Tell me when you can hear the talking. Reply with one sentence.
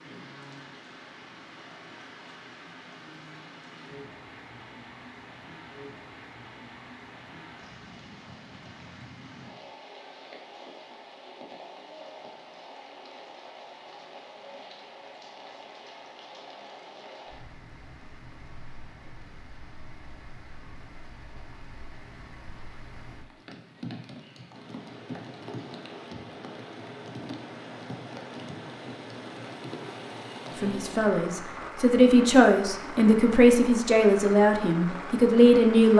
The talking can be heard from 30.6 to 35.9 s.